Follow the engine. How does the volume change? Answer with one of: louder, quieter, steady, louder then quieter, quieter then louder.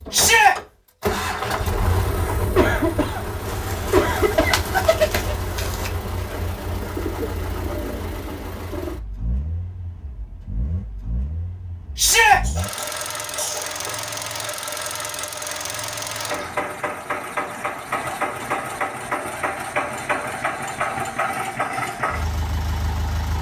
quieter then louder.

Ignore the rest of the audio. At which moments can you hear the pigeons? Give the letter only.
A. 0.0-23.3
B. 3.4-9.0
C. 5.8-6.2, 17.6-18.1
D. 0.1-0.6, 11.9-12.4
B.